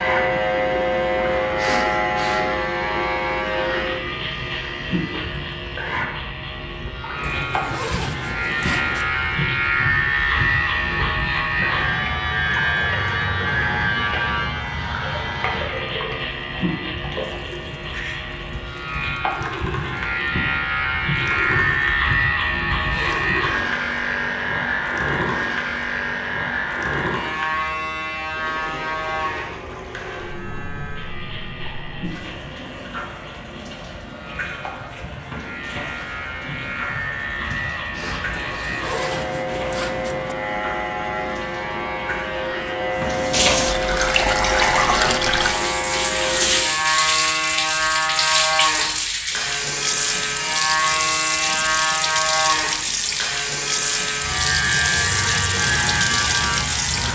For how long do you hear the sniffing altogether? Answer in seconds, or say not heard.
2 s.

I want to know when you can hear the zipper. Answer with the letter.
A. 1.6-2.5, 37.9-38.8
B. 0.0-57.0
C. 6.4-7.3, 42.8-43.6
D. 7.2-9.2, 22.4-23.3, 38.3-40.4
D.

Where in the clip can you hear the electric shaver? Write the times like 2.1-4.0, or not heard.
0.0-57.0.